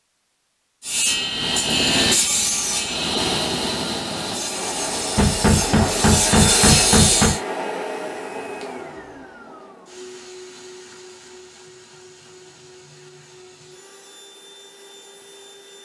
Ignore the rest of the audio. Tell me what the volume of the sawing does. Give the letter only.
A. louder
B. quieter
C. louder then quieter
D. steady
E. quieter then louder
E.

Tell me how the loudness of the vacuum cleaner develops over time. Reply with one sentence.
The volume of the vacuum cleaner goes down.